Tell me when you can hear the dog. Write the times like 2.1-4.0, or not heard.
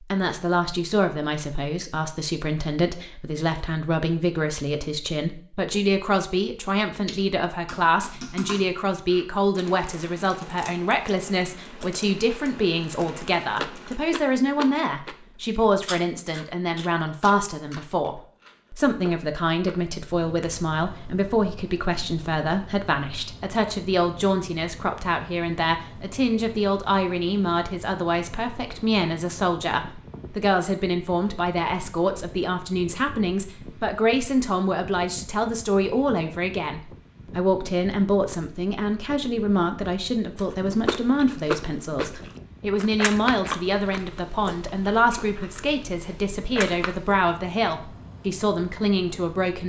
not heard.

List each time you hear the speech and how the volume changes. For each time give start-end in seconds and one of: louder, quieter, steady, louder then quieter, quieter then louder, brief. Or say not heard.
0.1-49.6 steady.